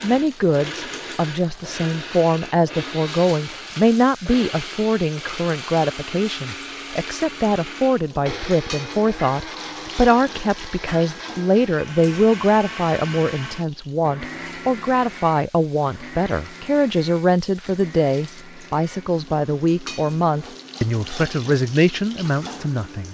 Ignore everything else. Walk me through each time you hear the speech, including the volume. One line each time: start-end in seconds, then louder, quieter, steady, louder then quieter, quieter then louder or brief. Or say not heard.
0.0-23.0 steady.